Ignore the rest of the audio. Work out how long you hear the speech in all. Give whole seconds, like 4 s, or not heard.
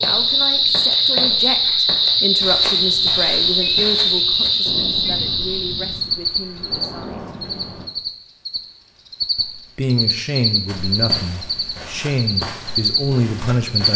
12 s.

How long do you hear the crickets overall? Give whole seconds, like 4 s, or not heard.
14 s.